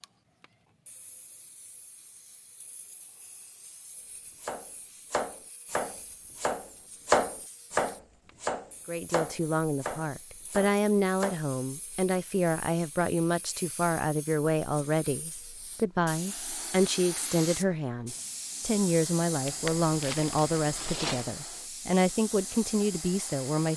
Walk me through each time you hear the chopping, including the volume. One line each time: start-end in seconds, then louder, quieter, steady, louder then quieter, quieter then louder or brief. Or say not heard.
4.4-11.4 louder then quieter.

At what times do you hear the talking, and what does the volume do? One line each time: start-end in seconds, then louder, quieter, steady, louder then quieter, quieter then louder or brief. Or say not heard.
8.8-23.7 steady.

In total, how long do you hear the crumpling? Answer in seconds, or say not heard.
2 s.